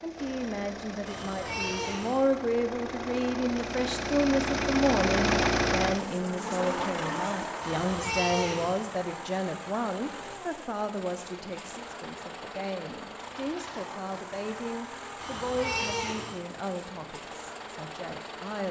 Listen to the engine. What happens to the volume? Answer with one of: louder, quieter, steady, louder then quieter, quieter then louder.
louder then quieter.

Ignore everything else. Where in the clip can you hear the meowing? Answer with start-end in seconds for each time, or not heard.
1.1-2.2, 7.6-8.8, 15.2-16.4.